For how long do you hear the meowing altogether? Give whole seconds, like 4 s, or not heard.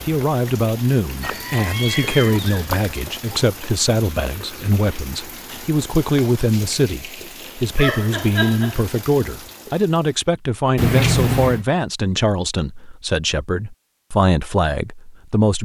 4 s.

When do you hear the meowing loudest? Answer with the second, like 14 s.
11 s.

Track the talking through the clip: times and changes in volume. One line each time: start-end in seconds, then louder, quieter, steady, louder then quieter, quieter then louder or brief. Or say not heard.
0.1-15.5 steady.